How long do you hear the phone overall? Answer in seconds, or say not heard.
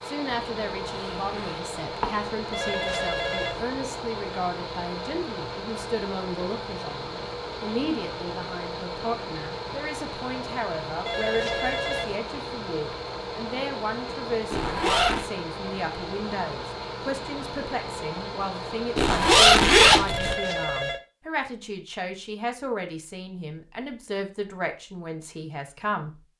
3 s.